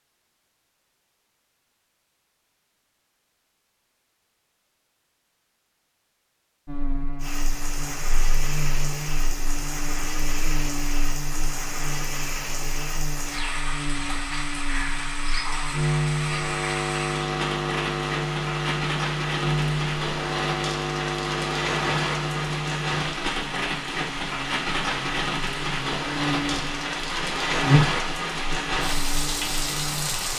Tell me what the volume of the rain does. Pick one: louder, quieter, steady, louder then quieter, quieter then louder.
louder.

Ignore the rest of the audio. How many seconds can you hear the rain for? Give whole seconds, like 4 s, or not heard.
23 s.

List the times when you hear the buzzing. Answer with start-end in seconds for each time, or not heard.
6.7-30.3.